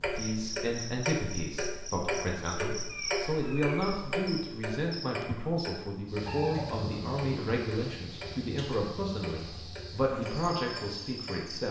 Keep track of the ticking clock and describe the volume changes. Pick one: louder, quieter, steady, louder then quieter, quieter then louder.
quieter.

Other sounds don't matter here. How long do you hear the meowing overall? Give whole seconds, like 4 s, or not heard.
2 s.